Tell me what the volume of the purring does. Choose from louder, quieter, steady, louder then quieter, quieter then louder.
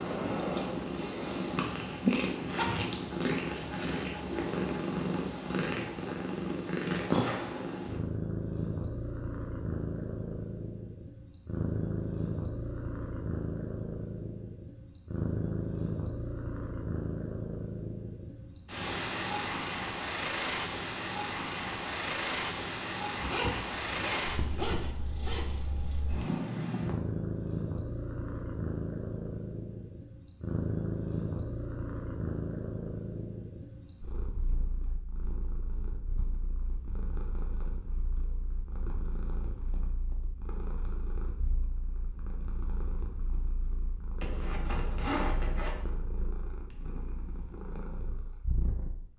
quieter.